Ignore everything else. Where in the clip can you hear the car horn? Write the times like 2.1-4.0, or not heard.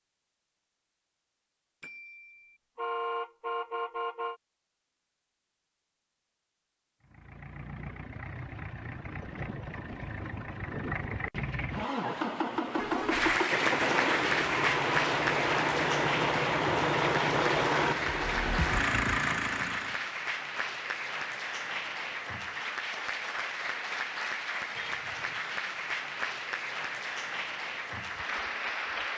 1.8-4.4, 12.8-13.4, 24.8-25.4.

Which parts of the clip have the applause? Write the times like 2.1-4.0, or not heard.
13.1-29.1.